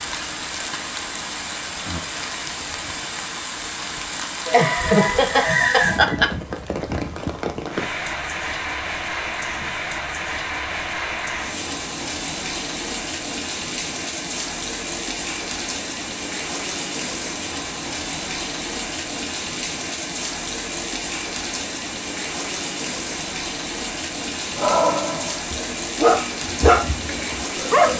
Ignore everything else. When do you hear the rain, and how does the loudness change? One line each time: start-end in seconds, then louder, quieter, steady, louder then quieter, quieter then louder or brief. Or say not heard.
0.0-27.9 steady.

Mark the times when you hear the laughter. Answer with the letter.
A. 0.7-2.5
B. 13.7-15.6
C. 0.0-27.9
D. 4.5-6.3
D.